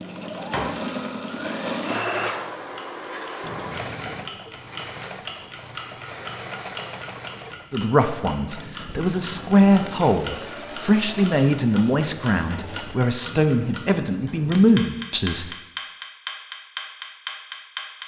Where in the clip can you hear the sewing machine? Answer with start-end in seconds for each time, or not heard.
0.0-13.2.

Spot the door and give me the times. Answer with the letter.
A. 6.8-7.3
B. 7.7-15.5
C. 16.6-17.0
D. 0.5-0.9
D.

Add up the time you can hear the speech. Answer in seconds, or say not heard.
8 s.